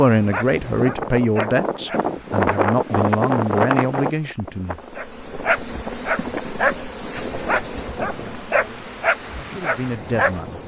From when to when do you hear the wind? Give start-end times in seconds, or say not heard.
0.0-10.6.